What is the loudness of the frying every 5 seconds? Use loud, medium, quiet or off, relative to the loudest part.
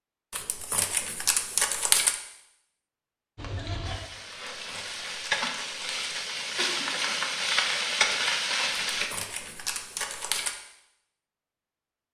medium, loud, off.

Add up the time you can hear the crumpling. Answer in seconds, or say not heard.
6 s.